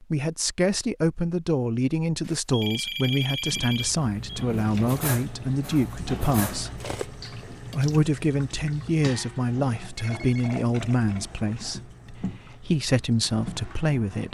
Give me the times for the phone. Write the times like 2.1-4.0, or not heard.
2.2-4.5, 9.9-10.6.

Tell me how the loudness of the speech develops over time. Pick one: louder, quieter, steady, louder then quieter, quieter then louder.
steady.